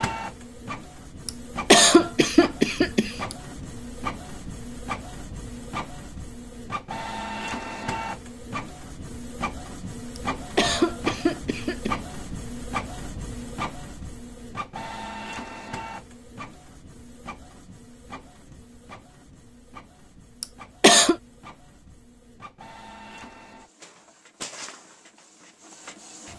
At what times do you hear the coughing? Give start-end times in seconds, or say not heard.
1.2-3.4, 10.2-11.9, 20.4-21.1.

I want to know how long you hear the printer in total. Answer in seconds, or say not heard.
26 s.